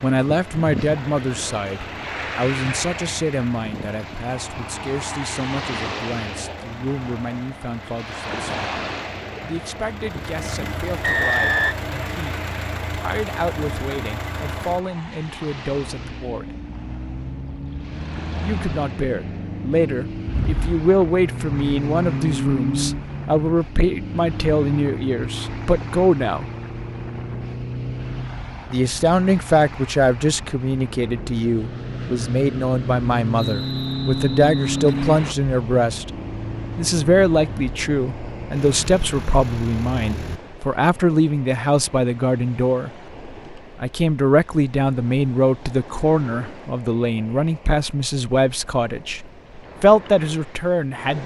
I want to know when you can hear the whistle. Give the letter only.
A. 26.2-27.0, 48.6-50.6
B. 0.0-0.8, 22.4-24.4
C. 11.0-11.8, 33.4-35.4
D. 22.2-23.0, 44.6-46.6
C.